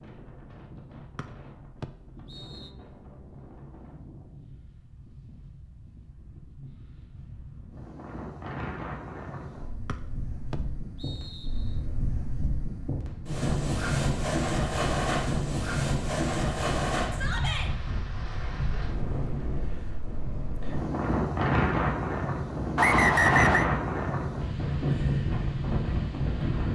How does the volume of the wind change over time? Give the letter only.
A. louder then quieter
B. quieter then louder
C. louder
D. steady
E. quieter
C.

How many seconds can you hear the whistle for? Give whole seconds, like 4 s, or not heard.
4 s.